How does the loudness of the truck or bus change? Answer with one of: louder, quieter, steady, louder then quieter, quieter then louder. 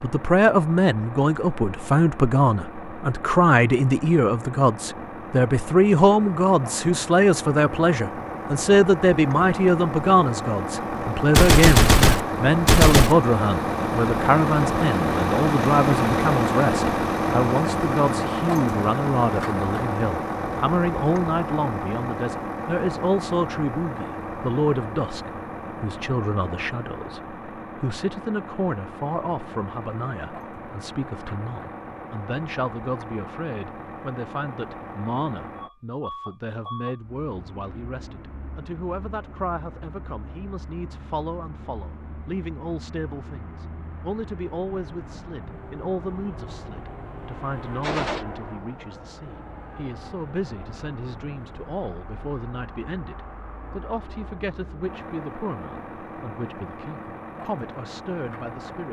louder then quieter.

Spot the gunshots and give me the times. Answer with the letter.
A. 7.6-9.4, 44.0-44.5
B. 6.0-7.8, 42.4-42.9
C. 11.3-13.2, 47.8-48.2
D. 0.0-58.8
C.